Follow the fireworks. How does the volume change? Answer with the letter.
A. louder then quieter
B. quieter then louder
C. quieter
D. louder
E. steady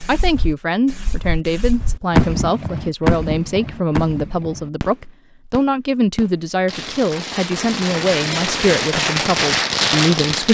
B.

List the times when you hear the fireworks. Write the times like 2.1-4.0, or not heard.
0.0-10.4.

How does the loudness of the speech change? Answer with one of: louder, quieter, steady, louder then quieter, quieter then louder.
steady.